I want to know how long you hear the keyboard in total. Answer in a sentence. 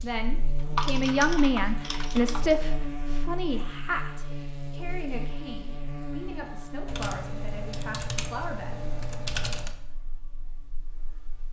You can hear the keyboard for 5 seconds altogether.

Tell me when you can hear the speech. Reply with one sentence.
You can hear the speech from 0.0 to 8.9 s.